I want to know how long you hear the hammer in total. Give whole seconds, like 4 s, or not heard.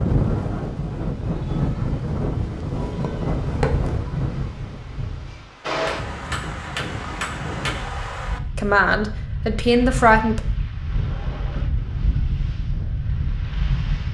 3 s.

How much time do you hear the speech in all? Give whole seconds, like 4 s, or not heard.
2 s.